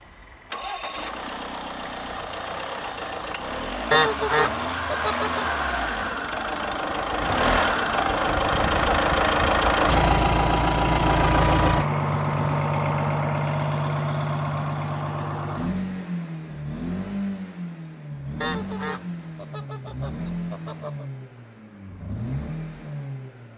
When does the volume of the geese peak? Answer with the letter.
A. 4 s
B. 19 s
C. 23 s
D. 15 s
A.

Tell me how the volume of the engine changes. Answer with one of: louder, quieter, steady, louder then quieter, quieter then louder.
louder then quieter.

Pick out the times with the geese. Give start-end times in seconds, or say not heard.
3.9-5.5, 18.4-21.1.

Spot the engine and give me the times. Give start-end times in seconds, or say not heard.
0.0-23.5.